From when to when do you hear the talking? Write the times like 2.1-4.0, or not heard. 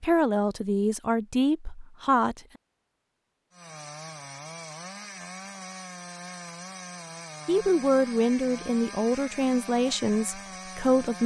0.0-2.4, 7.5-11.2.